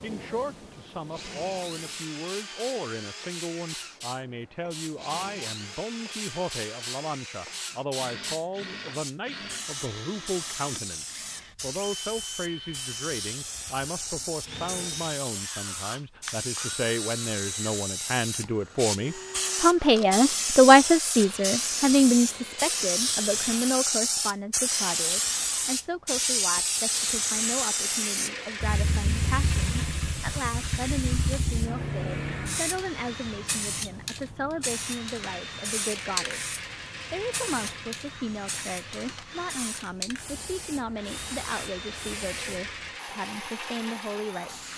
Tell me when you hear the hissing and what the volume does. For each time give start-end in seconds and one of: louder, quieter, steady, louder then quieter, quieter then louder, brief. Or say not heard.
0.0-44.7 louder then quieter.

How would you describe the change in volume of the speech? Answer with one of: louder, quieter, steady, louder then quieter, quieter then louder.
louder then quieter.